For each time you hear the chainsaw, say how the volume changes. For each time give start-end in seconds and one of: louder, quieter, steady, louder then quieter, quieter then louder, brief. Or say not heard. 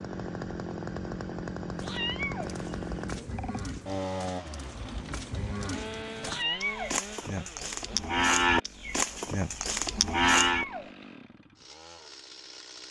0.0-12.8 quieter.